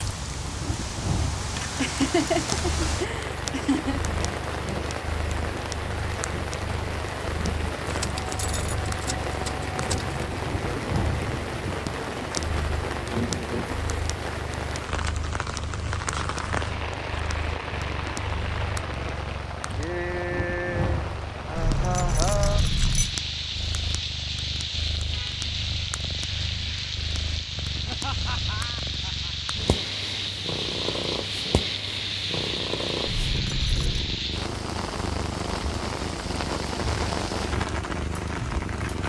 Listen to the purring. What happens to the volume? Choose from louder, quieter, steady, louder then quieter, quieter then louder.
steady.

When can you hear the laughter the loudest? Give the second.
2 s.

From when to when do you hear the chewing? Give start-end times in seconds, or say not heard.
not heard.